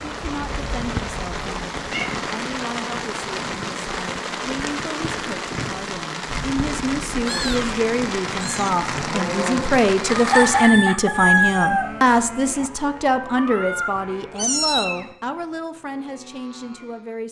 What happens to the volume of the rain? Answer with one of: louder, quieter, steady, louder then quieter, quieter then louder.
steady.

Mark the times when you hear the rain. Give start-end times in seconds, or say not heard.
0.0-10.8.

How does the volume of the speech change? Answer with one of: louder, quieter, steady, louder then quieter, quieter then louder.
louder then quieter.